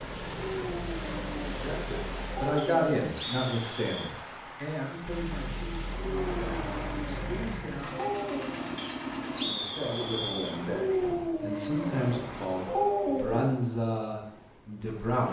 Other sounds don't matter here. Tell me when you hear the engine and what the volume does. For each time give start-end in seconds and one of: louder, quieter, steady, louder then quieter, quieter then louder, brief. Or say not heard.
0.0-2.5 brief
5.0-9.5 louder.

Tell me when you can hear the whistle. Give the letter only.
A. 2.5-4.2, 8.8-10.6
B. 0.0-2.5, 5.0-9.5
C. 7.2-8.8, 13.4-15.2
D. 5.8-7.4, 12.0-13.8
A.